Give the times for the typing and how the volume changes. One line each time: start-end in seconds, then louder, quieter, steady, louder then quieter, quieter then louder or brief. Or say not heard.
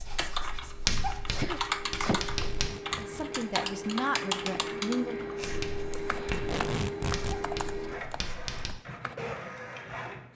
0.1-9.2 quieter.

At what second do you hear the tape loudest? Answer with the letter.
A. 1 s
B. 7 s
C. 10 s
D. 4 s
B.